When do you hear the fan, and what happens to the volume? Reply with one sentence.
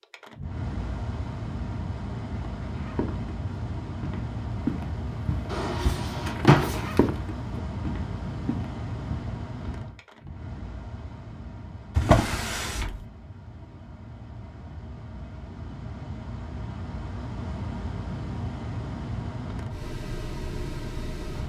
The fan can be heard from 0.0 to 21.4 s, getting quieter then louder.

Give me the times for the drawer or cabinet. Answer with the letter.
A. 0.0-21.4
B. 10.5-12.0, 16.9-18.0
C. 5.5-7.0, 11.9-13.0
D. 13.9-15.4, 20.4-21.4
C.